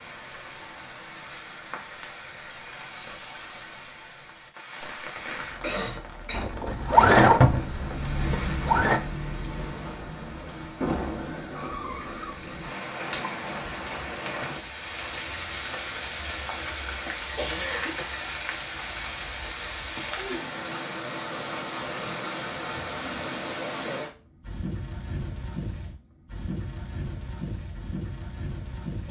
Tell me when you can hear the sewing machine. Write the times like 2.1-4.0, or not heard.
6.3-9.0.